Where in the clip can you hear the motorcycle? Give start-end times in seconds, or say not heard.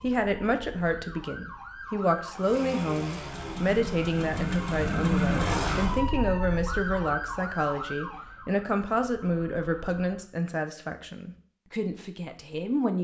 2.4-6.0.